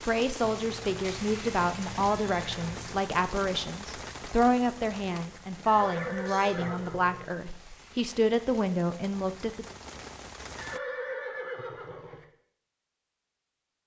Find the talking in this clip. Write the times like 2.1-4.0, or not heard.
0.1-9.7.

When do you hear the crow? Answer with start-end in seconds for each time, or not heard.
not heard.